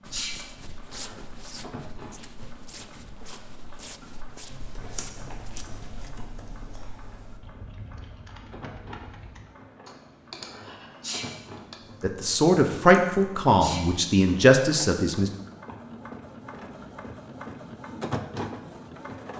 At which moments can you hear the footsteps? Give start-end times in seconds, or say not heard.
0.0-6.1.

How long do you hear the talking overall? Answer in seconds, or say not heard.
3 s.